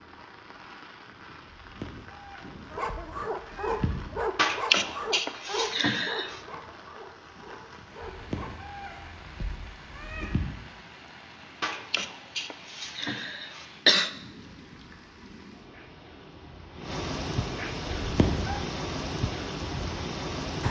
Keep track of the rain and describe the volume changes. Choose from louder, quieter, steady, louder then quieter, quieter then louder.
louder.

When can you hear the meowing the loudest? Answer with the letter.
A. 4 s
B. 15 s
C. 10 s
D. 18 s
D.